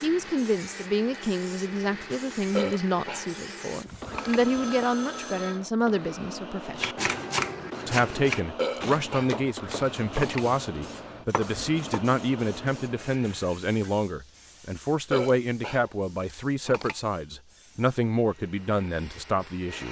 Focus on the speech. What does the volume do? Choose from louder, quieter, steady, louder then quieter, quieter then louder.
steady.